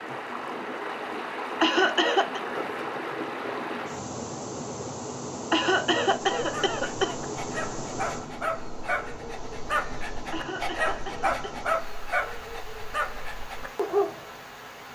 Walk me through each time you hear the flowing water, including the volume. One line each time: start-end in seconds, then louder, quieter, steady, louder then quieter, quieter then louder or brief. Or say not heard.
0.0-14.9 quieter.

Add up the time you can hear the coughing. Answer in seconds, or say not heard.
4 s.